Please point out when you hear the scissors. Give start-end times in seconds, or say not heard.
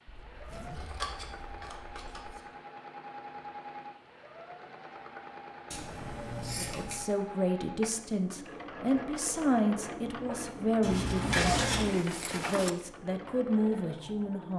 0.8-2.4, 5.7-7.0, 10.8-11.9.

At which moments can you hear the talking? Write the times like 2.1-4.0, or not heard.
6.6-14.5.